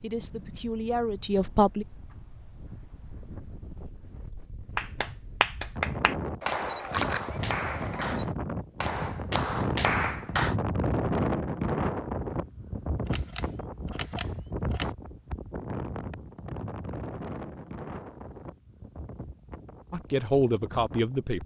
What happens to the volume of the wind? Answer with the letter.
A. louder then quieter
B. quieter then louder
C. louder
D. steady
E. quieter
A.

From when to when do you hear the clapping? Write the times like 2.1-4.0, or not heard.
4.8-10.6.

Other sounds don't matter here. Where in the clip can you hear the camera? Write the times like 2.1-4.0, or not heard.
6.4-8.2, 13.1-14.9.